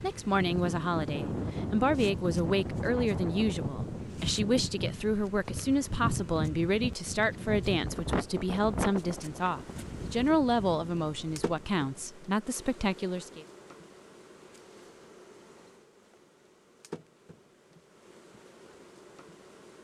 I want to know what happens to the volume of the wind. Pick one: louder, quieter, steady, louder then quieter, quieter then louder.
quieter.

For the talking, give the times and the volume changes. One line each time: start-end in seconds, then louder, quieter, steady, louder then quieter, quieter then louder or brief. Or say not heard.
0.0-13.4 steady.